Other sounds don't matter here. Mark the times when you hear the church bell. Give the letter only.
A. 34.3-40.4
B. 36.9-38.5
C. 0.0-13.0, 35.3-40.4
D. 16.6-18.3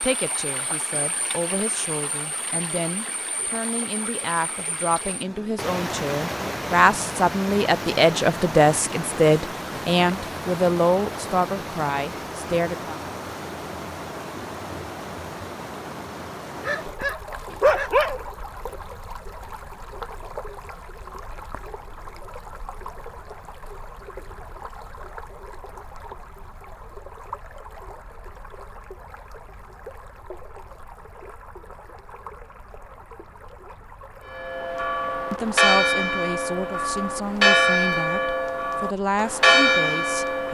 A.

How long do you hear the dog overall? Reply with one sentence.
The dog can be heard for 2 seconds in total.